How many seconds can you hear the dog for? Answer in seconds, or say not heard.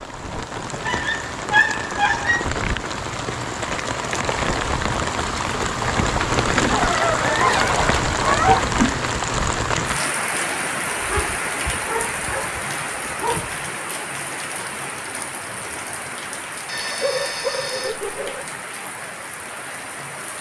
8 s.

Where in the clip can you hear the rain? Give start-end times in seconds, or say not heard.
0.0-20.3.